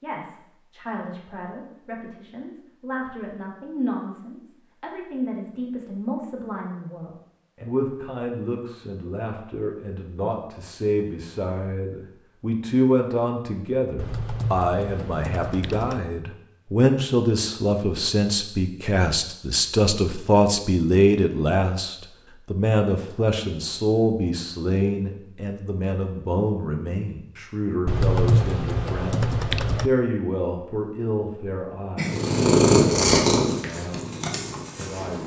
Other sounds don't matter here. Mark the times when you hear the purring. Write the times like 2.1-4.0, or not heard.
31.9-35.2.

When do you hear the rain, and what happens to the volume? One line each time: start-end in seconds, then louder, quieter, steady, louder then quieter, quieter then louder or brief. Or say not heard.
not heard.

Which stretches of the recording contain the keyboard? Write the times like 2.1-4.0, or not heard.
13.9-16.0, 27.9-29.9.